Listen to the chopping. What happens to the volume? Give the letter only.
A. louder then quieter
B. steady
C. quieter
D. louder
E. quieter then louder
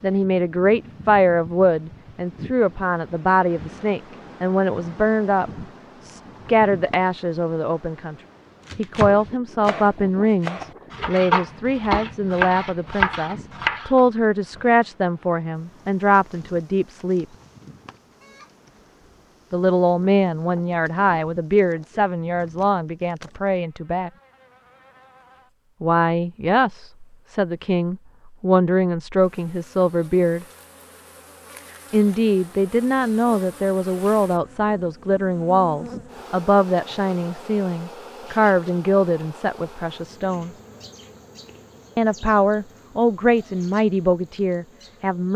D.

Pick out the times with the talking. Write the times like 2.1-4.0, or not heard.
0.0-8.2, 8.8-17.2, 19.5-24.1, 25.8-30.4, 31.9-40.5, 42.0-45.3.